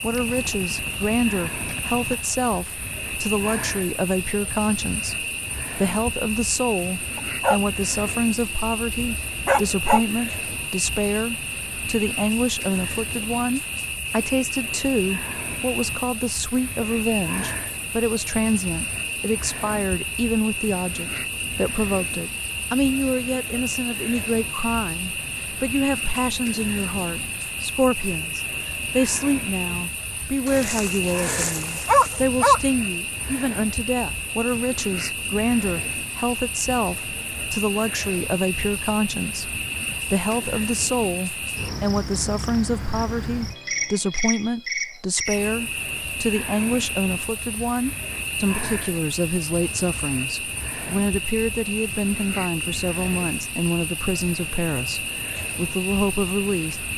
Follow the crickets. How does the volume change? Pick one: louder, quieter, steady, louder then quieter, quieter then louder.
steady.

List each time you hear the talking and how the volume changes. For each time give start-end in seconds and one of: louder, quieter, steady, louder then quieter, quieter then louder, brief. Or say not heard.
0.0-56.9 steady.